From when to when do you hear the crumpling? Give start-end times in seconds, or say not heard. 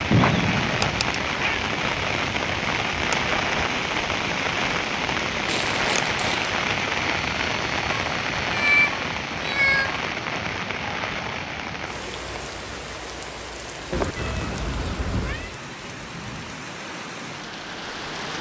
5.5-6.5.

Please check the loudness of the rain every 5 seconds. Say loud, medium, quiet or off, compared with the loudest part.
loud, loud, medium, medium.